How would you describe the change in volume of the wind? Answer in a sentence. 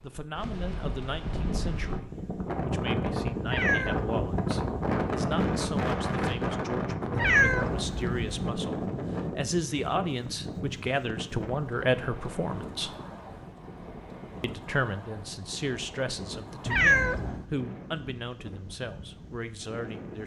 The volume of the wind goes down.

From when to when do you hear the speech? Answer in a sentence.
You can hear the speech from 0.0 to 12.9 s and from 14.4 to 20.2 s.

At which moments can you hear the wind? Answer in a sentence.
The wind can be heard from 0.0 to 20.2 s.